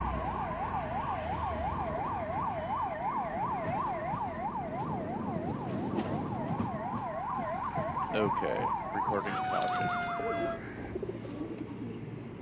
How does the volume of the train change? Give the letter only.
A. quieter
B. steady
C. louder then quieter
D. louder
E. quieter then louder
C.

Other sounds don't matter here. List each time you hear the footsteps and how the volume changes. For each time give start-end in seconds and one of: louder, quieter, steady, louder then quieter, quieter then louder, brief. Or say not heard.
not heard.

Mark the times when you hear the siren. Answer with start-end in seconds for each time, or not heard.
0.0-10.6.